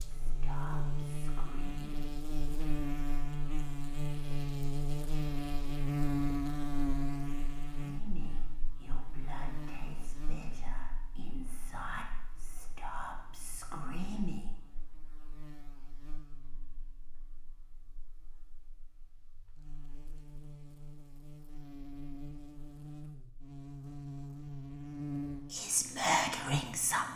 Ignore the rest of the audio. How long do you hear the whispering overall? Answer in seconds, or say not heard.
10 s.